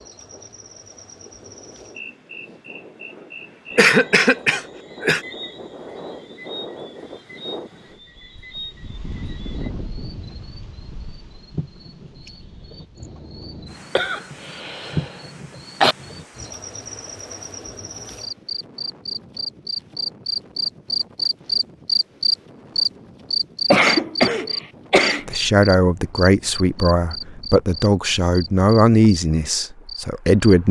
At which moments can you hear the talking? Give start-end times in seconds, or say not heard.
25.2-30.6.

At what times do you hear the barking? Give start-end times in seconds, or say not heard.
not heard.